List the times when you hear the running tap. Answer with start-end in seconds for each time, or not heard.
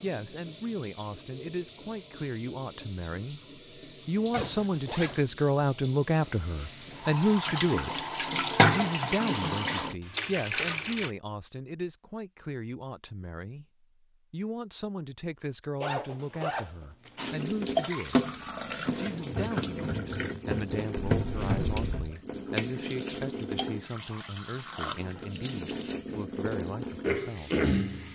0.0-11.2, 17.1-28.1.